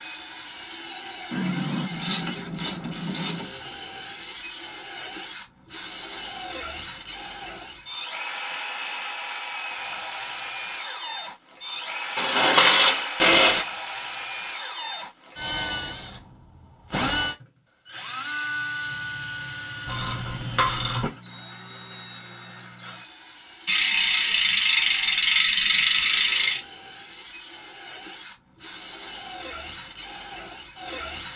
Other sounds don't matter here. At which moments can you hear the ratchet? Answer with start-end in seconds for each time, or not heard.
1.3-3.5, 12.2-13.7, 19.9-21.1, 23.6-26.6.